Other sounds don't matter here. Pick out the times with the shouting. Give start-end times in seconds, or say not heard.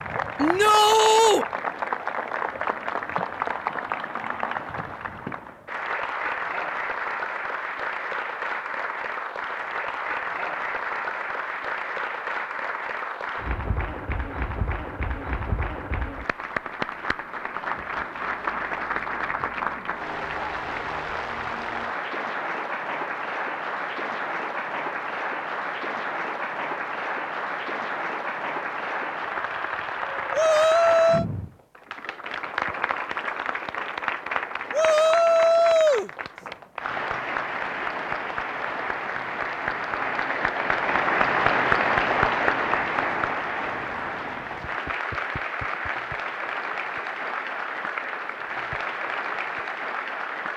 0.3-1.4, 30.3-31.2, 34.7-36.1.